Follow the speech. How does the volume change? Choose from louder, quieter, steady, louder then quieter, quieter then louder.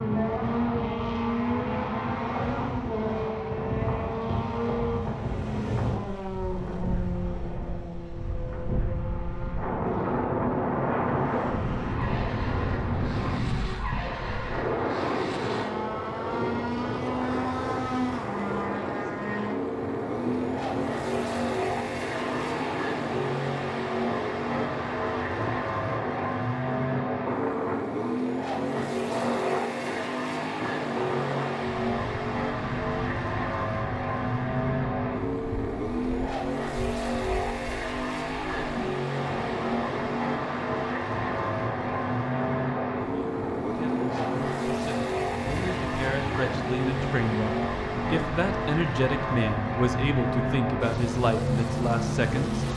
louder.